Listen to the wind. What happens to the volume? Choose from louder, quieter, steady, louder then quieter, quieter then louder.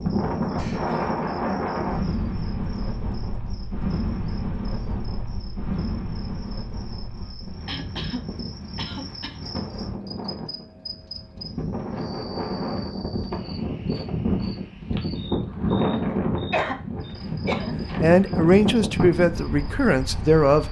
quieter then louder.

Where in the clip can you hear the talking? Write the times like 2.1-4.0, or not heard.
18.0-20.6.